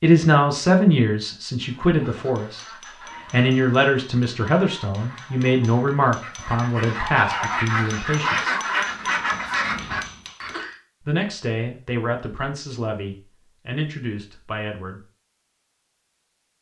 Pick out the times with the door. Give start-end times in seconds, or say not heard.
not heard.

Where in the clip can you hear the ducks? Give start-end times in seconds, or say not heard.
1.6-10.8.